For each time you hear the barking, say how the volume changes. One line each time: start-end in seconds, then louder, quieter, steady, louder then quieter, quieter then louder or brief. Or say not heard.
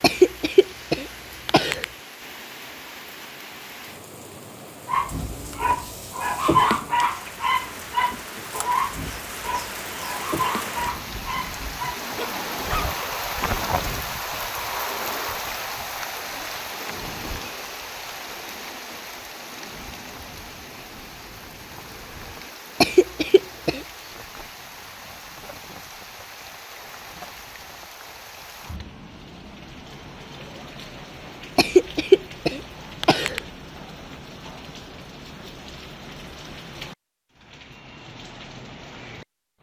4.8-12.9 quieter.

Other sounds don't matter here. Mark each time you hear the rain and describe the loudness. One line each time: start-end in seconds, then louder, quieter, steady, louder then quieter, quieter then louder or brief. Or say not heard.
0.0-39.5 louder then quieter.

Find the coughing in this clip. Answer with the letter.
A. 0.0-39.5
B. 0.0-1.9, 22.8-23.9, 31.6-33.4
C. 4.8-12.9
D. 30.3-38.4
B.